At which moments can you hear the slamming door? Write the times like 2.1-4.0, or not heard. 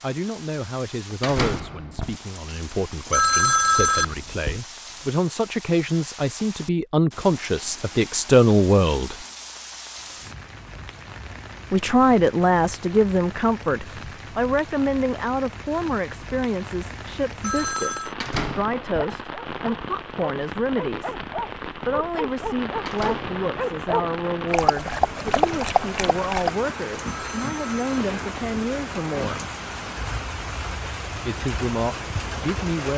1.2-2.2, 18.2-19.1, 22.9-23.4.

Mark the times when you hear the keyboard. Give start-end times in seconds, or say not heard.
not heard.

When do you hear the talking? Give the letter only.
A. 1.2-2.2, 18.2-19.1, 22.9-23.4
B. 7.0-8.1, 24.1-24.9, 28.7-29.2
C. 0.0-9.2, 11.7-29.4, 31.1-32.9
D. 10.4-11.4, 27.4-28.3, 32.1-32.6
C.